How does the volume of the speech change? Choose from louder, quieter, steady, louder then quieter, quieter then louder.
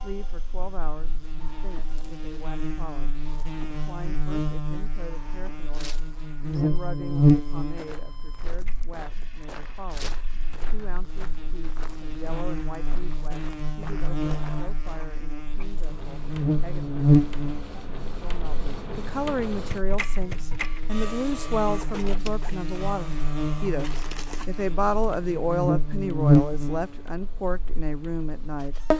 louder.